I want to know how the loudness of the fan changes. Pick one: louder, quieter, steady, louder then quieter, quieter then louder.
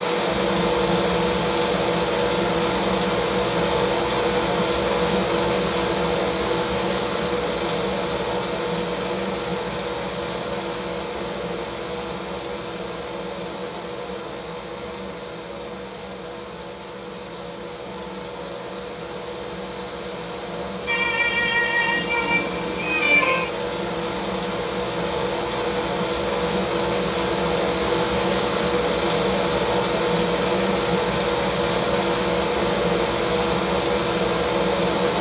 quieter then louder.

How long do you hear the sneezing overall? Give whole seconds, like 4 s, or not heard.
3 s.